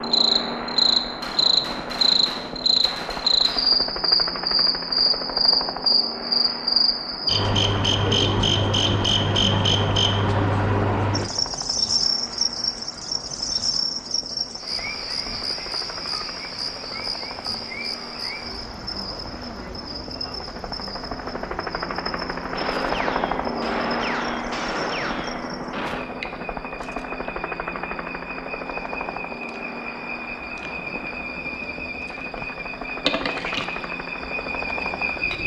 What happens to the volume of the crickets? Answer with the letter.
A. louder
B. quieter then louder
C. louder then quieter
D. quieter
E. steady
B.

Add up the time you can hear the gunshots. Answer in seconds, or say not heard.
6 s.